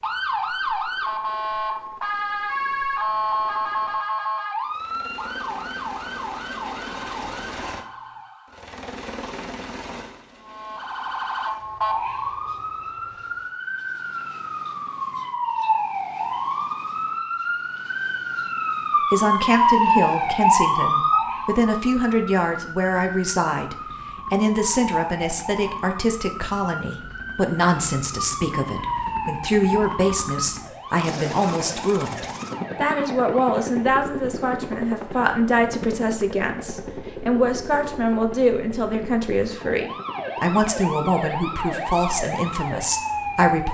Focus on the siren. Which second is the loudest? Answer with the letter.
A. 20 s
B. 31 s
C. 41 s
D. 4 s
A.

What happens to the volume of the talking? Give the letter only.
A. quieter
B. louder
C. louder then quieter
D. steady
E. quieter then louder
D.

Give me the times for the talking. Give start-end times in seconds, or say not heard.
19.1-43.6.